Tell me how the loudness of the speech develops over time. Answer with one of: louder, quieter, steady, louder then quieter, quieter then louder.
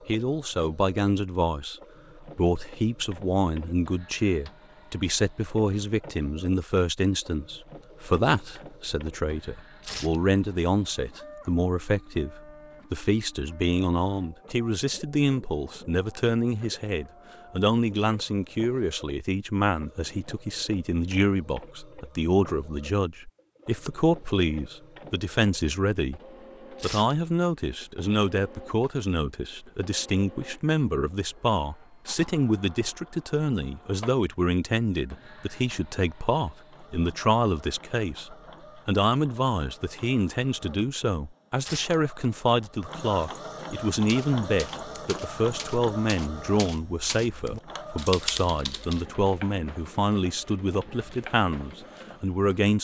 steady.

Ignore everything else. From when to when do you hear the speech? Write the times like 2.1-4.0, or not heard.
0.1-26.2, 26.8-52.7.